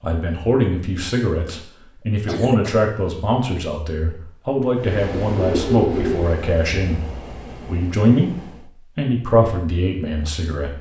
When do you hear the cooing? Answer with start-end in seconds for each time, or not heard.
5.2-6.3.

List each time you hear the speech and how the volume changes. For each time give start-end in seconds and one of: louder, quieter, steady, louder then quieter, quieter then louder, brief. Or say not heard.
0.0-10.7 steady.